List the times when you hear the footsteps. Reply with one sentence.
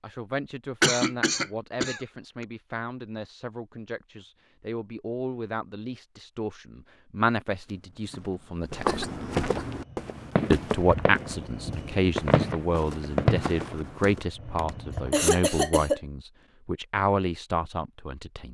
You can hear the footsteps from 7.5 to 14.2 s.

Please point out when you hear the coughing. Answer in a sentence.
The coughing can be heard from 0.8 to 2.5 s, from 8.8 to 9.7 s and from 14.6 to 16.0 s.